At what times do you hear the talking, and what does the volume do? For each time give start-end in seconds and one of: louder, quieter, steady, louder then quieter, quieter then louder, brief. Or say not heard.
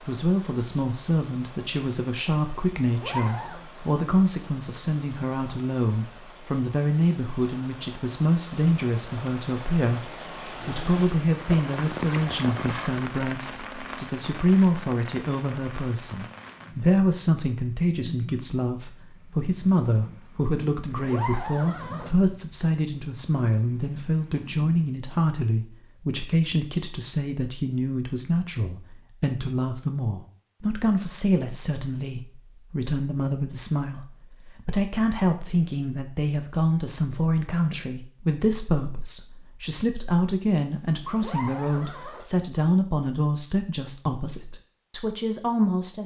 0.0-46.0 steady.